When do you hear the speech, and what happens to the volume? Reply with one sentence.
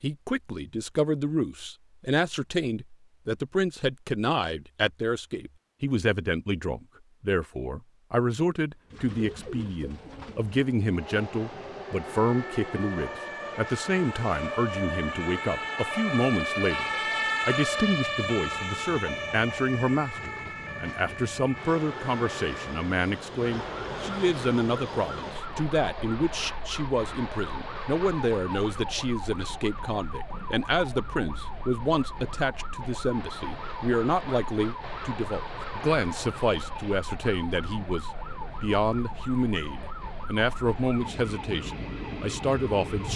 You can hear the speech from 0.0 to 43.1 s, at a steady volume.